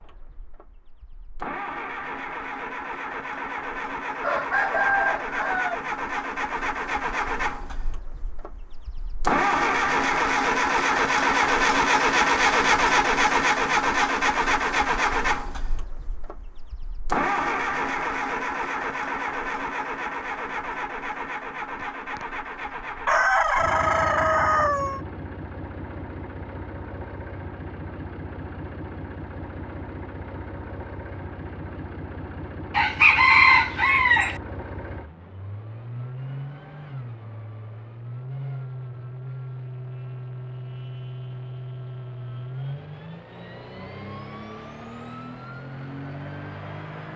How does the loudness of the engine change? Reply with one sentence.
The loudness of the engine goes up, then down.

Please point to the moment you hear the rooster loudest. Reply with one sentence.
The loudest moment of the rooster is at 33 seconds.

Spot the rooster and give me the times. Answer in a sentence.
You can hear the rooster from 4.2 to 5.8 s, from 21.8 to 22.2 s, from 23.1 to 25.0 s and from 32.8 to 34.4 s.